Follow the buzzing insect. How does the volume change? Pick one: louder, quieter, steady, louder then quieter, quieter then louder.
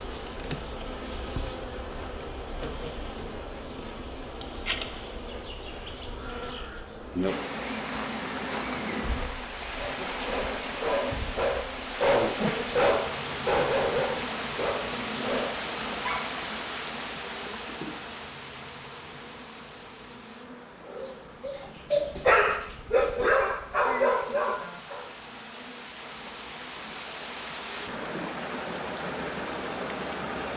quieter.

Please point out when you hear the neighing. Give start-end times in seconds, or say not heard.
not heard.